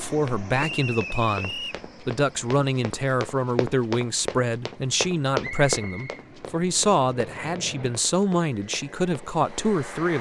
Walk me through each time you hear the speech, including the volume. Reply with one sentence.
You can hear the speech from 0.0 to 10.1 s, at a steady volume.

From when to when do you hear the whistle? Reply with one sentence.
The whistle can be heard from 0.6 to 1.9 s and from 5.4 to 6.2 s.